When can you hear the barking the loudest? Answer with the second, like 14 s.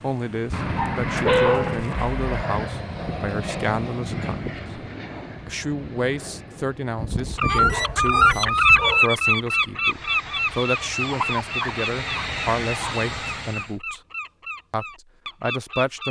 1 s.